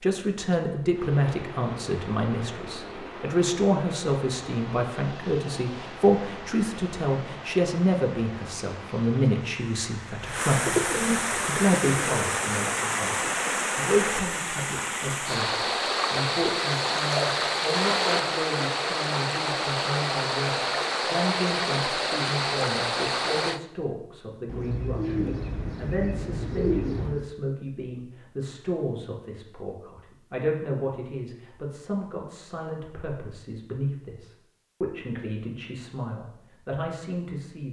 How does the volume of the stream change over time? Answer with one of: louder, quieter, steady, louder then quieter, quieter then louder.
louder.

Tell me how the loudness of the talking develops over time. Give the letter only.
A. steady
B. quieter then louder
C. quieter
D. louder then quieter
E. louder
C.